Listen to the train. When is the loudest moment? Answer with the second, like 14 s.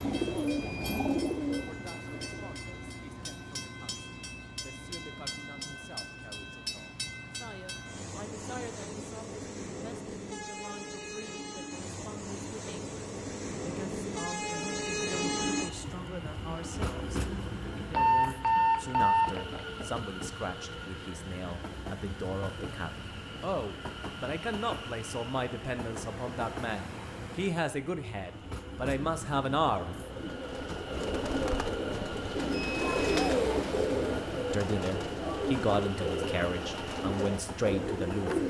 15 s.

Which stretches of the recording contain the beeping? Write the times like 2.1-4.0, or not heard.
0.5-1.0, 17.9-19.9, 32.5-33.2.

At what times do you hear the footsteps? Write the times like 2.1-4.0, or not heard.
not heard.